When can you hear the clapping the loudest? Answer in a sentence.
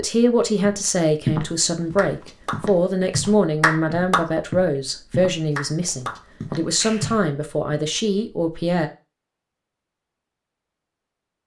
The loudest moment of the clapping is at 4 seconds.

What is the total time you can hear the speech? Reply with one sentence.
The speech can be heard for 9 seconds in total.